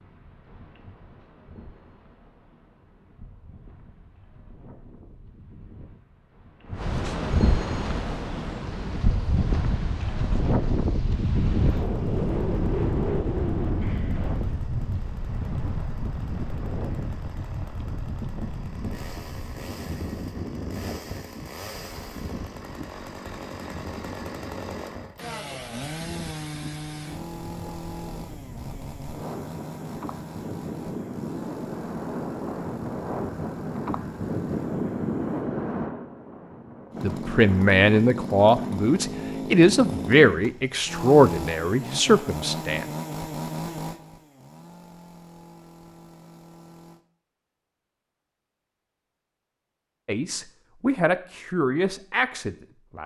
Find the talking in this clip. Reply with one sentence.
You can hear the talking from 37.0 to 42.9 s and from 50.0 to 53.0 s.